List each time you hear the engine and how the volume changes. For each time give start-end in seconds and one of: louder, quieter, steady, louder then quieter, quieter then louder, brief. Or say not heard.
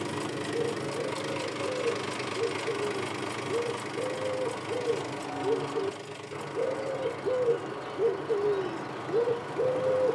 0.0-10.0 quieter.